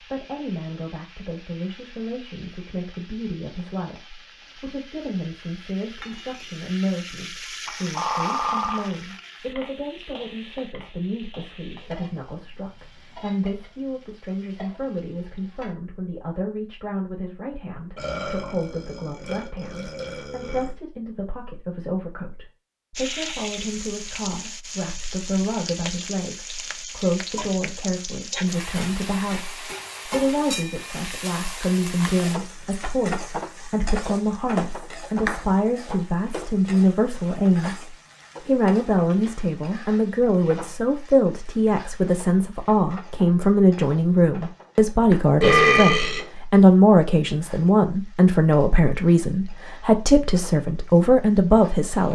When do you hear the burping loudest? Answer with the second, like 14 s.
46 s.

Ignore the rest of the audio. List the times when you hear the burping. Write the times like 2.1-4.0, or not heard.
8.0-8.8, 17.9-20.8, 45.4-46.2.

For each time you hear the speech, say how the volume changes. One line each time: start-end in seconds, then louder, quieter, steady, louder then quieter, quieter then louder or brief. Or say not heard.
0.0-52.0 louder.